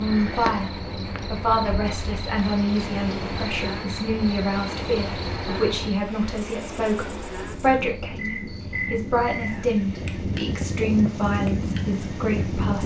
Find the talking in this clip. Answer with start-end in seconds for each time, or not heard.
0.0-12.8.